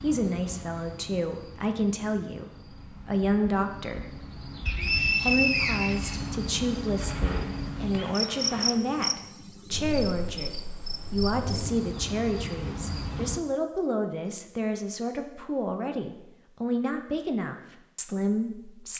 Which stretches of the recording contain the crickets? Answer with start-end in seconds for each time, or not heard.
0.0-13.4.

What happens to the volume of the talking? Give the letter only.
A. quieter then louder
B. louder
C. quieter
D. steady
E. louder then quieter
D.